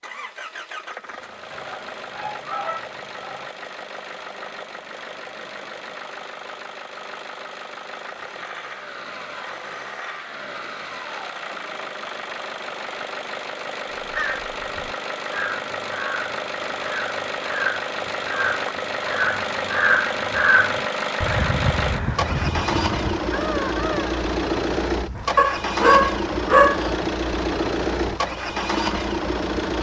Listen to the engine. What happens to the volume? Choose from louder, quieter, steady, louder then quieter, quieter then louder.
louder.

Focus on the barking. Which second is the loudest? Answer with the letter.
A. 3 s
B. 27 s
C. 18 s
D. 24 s
B.